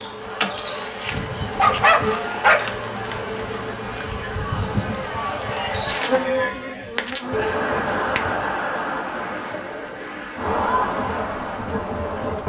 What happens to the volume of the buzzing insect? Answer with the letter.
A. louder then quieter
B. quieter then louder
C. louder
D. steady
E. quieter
E.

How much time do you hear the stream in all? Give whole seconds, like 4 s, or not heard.
not heard.